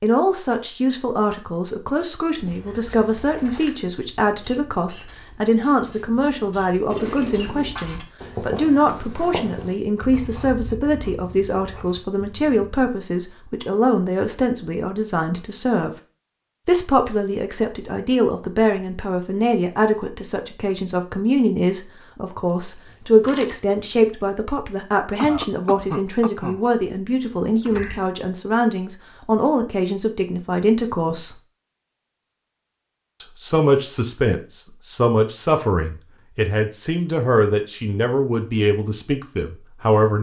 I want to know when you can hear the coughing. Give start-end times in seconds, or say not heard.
6.8-7.7, 25.1-26.6.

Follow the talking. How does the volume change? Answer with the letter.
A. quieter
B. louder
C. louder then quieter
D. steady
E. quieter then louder
D.